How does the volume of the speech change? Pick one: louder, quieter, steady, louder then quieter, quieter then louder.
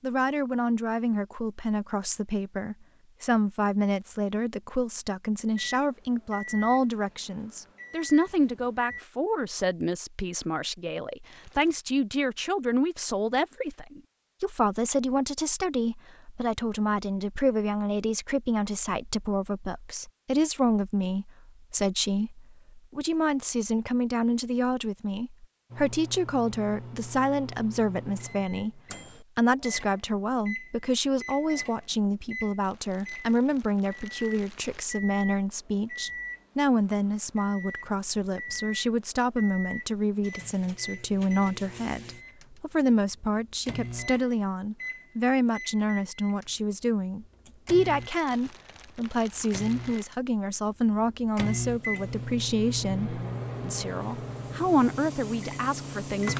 steady.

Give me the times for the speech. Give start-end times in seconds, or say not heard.
0.0-56.3.